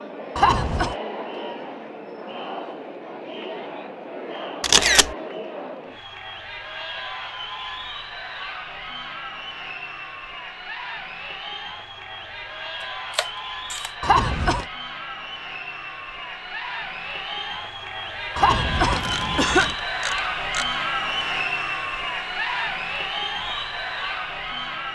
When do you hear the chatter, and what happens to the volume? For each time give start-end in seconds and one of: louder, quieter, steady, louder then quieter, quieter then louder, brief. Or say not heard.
0.0-24.8 louder.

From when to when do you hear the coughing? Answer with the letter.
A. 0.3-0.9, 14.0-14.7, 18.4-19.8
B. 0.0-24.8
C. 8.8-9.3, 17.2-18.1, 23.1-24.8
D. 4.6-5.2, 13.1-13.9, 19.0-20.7
A.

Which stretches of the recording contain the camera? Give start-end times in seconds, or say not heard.
4.6-5.2, 13.1-13.9, 19.0-20.7.